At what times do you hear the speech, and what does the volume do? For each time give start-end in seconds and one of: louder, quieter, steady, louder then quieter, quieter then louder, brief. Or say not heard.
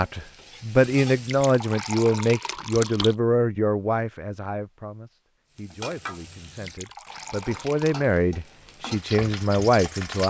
0.0-10.2 quieter then louder.